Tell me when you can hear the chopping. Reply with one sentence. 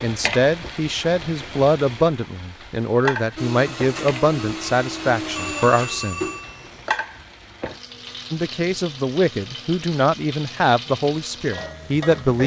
The chopping can't be heard in this clip.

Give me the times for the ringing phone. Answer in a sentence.
You can hear the ringing phone from 5.3 to 7.0 s.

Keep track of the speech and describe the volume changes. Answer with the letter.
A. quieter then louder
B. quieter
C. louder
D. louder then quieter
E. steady
E.